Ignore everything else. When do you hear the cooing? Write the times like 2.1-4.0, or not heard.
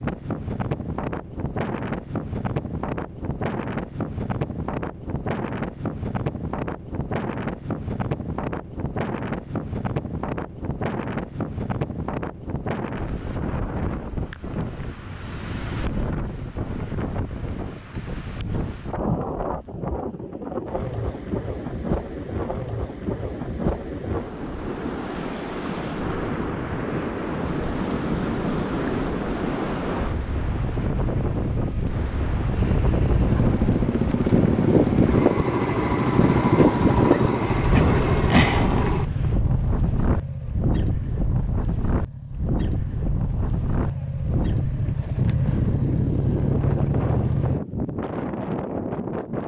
not heard.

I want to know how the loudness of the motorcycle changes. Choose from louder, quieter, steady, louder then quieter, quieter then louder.
quieter then louder.